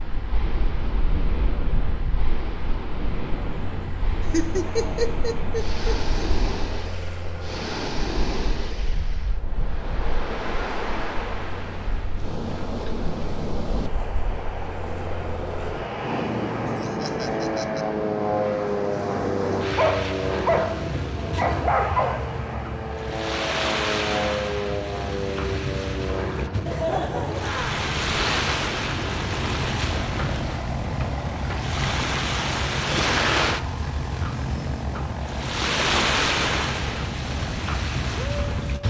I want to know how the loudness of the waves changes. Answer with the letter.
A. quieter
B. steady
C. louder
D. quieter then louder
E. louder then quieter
C.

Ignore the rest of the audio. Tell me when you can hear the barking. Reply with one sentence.
You can hear the barking from 19.8 to 22.4 s.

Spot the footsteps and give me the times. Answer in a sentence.
You can't hear the footsteps here.